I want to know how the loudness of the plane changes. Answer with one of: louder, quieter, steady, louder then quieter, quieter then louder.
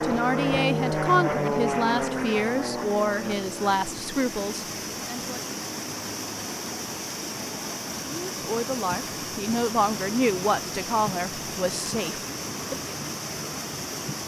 quieter.